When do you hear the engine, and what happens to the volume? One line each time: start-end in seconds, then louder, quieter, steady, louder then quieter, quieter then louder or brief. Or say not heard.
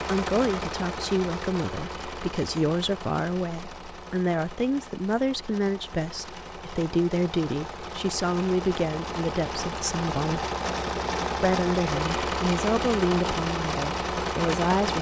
0.0-14.9 quieter then louder.